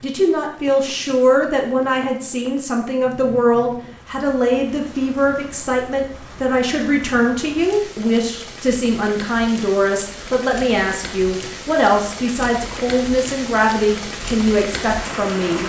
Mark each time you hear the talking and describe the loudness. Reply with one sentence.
The talking can be heard from 0.0 to 15.6 s, at a steady volume.